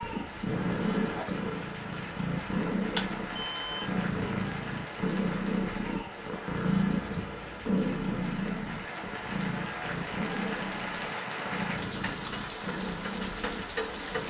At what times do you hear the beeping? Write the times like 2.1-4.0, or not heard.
3.0-3.9.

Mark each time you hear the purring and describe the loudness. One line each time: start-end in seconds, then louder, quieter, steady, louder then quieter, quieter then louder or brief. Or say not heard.
0.0-14.2 quieter.